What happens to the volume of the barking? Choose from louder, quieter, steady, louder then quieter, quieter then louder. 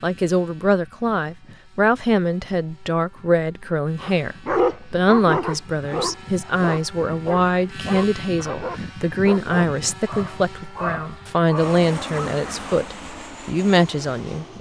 quieter.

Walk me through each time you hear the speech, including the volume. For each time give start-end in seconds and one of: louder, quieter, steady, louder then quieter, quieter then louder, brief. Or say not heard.
0.0-14.5 steady.